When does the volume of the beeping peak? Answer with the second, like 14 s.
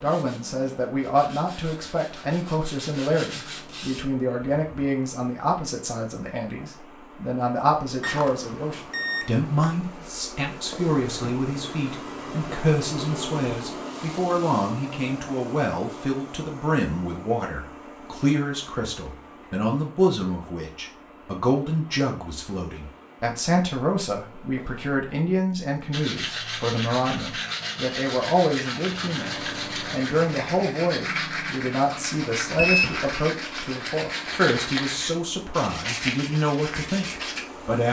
33 s.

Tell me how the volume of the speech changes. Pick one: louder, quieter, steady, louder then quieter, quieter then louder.
steady.